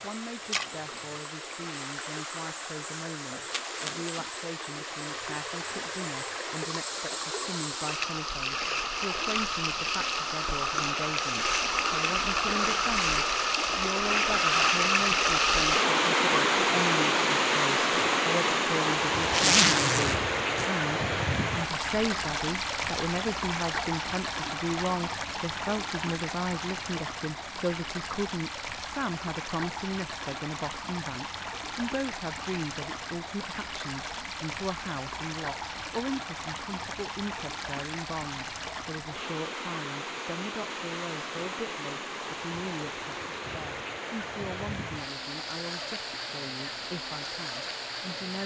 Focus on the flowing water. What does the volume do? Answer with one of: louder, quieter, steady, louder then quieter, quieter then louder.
louder then quieter.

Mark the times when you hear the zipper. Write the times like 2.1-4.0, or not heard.
19.1-20.7.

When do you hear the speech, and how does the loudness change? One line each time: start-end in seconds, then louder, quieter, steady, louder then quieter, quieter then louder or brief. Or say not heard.
0.0-48.4 louder then quieter.